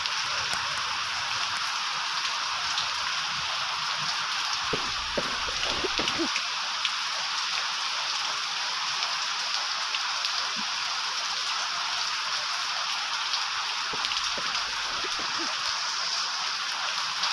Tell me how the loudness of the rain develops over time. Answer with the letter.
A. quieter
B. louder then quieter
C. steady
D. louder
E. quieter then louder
C.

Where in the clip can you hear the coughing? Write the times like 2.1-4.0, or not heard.
4.7-6.3, 13.9-15.5.